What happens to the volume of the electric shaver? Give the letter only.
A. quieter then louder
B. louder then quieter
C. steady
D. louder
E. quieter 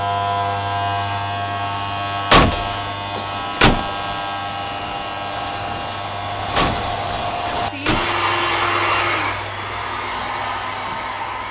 E.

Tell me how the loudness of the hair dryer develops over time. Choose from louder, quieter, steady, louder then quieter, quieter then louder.
louder.